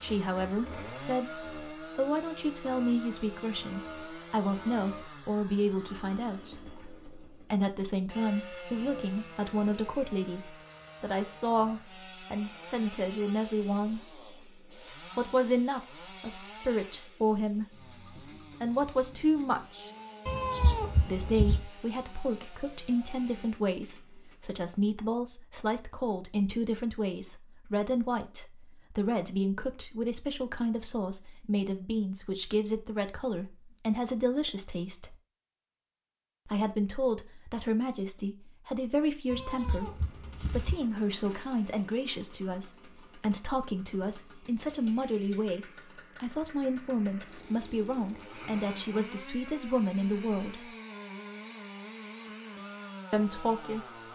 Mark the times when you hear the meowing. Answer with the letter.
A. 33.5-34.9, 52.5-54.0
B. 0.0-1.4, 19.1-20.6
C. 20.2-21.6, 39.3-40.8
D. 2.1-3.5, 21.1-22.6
C.